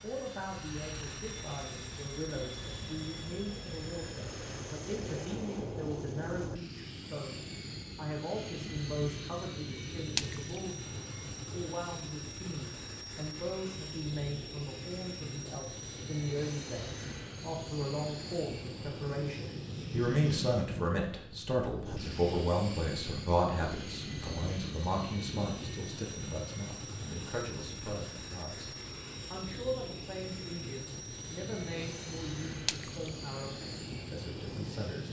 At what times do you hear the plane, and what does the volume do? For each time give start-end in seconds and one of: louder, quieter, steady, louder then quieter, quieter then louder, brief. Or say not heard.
0.0-35.0 steady.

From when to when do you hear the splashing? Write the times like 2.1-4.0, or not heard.
10.2-10.6, 32.6-33.1.